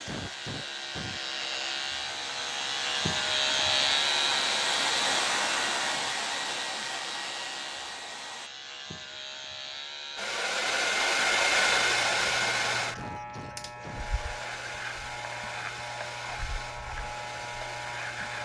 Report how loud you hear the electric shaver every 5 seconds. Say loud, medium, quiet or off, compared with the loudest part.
loud, medium, medium, medium.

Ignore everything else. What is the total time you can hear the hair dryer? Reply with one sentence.
The hair dryer can be heard for 17 seconds in total.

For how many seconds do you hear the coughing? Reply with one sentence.
You can hear the coughing for 2 seconds altogether.